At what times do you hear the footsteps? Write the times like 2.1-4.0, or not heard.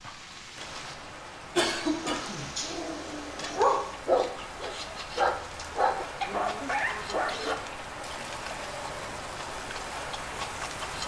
not heard.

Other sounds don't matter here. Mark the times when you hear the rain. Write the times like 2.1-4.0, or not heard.
0.0-11.0.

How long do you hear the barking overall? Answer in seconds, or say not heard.
6 s.